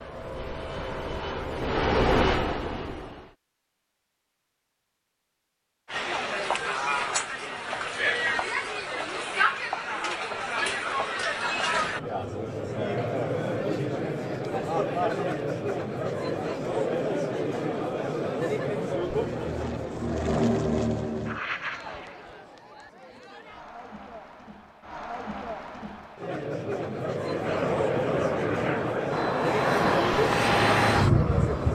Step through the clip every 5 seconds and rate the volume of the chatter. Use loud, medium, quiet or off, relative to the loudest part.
off, loud, loud, loud, quiet, loud, loud.